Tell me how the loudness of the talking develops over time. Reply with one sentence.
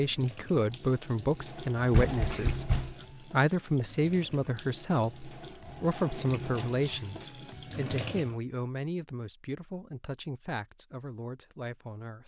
The volume of the talking goes down.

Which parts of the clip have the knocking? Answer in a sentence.
The knocking can be heard from 1.9 to 3.0 s.